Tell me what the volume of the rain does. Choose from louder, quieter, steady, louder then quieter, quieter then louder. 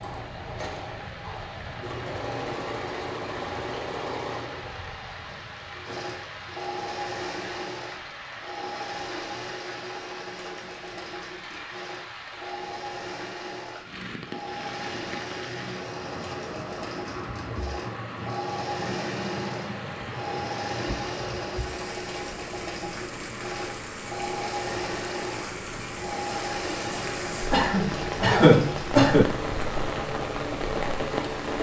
louder.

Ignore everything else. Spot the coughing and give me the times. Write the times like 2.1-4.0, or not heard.
27.5-29.2.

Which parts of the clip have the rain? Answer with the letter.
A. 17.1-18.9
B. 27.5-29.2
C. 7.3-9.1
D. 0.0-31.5
D.